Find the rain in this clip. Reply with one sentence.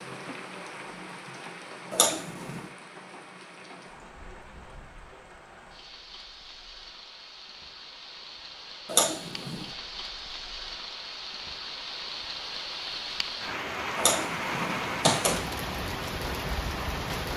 You can hear the rain from 0.0 to 17.3 s.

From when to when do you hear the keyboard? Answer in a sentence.
The keyboard can't be heard in this clip.